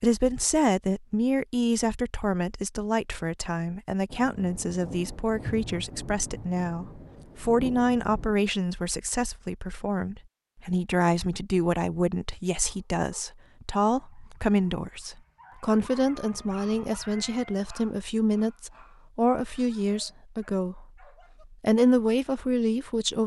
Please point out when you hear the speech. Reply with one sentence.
You can hear the speech from 0.0 to 20.9 s and from 21.5 to 23.2 s.